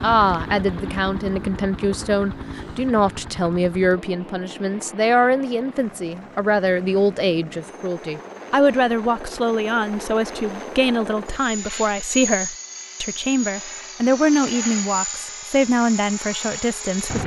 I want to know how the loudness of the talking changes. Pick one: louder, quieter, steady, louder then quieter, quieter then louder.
steady.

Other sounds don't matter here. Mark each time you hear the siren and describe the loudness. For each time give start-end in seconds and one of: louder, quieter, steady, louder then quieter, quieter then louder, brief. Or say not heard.
not heard.